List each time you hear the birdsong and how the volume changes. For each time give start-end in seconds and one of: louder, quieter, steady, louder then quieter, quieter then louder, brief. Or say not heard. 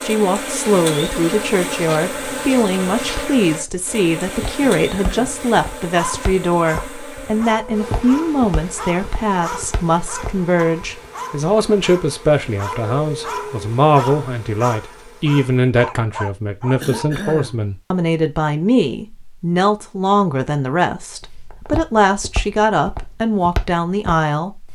not heard.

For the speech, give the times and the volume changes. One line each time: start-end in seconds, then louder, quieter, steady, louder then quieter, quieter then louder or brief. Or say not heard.
0.0-24.6 steady.